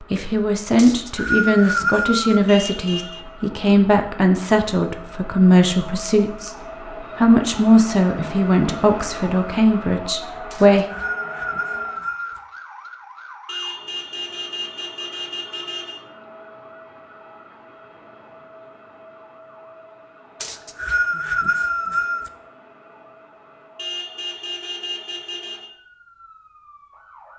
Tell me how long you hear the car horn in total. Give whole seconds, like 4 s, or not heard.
5 s.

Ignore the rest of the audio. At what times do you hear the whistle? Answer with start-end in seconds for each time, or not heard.
0.8-2.4, 10.5-12.4, 20.4-22.3.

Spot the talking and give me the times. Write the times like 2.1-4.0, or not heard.
0.0-6.5, 7.2-10.8.